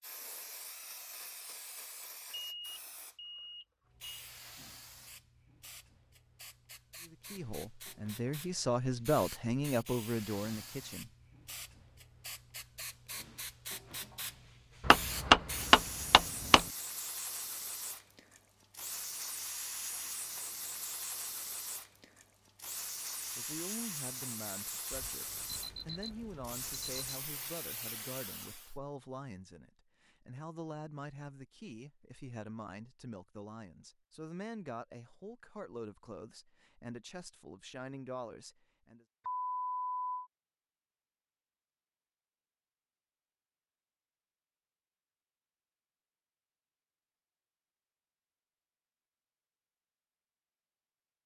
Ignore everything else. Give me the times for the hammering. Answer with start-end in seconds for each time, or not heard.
14.8-16.6.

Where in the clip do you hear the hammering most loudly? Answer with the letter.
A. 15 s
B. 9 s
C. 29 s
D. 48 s
A.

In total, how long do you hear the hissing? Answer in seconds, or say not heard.
29 s.